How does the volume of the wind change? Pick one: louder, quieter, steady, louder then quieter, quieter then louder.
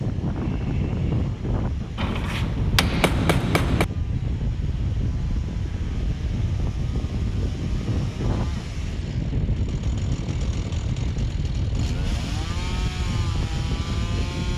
steady.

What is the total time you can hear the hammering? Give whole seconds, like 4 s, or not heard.
2 s.